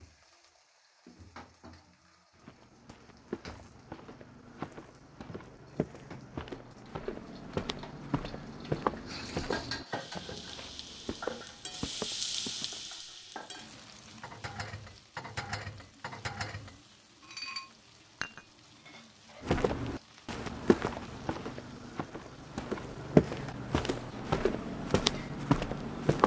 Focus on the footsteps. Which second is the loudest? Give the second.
23 s.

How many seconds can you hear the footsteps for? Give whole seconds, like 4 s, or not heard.
17 s.